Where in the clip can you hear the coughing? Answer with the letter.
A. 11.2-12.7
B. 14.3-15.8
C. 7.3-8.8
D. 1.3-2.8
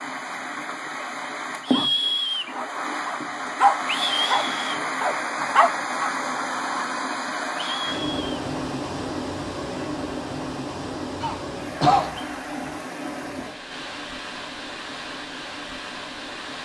A.